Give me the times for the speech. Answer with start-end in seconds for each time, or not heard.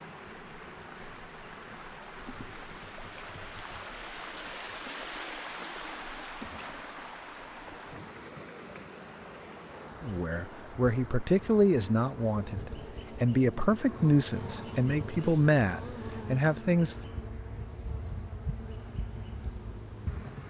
10.0-16.9.